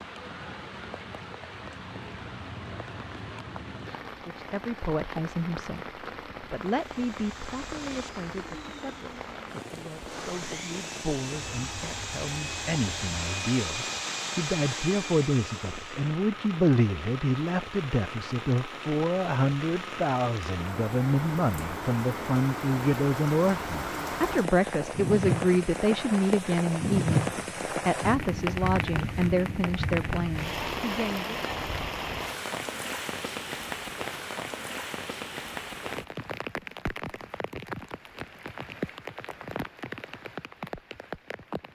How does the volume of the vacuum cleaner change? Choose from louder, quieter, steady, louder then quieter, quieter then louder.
louder.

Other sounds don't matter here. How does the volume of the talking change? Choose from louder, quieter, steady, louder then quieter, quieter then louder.
louder.